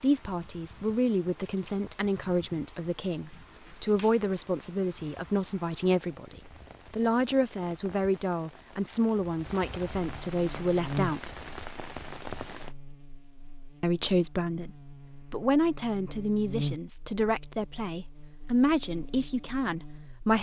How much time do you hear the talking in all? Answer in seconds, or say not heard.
18 s.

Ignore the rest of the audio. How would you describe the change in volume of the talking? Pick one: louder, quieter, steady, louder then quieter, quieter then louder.
steady.